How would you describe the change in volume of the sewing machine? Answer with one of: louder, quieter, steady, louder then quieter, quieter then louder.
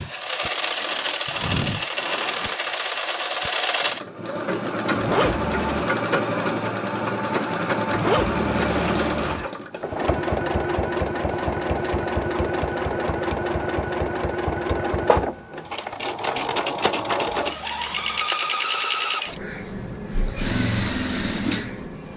steady.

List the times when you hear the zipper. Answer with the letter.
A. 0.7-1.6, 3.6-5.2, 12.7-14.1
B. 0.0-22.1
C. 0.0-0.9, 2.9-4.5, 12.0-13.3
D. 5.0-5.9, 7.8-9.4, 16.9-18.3
D.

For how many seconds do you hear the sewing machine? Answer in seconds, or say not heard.
22 s.